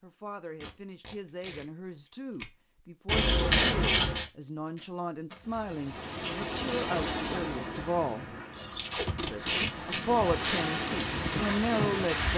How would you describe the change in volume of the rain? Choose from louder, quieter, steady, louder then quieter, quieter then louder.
quieter then louder.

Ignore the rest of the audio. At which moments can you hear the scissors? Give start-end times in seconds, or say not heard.
3.0-4.2, 8.5-9.4.